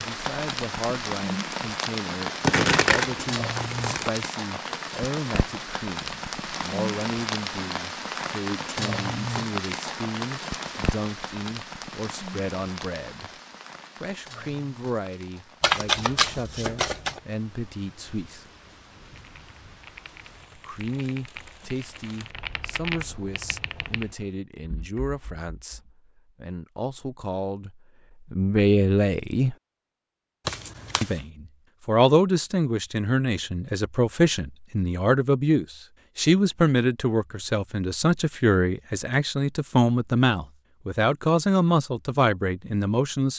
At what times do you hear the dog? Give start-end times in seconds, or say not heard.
not heard.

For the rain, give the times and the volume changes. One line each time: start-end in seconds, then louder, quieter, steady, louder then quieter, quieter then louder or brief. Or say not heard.
0.0-24.4 quieter.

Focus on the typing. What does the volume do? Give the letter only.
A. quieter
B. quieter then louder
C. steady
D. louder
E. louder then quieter
E.